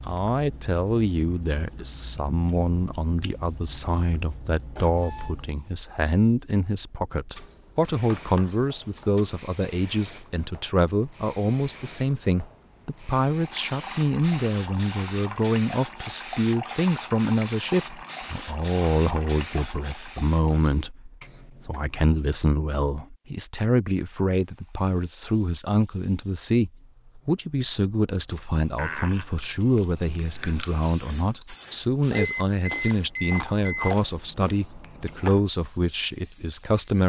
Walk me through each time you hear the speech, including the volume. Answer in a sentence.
The speech can be heard from 0.1 to 37.0 s, at a steady volume.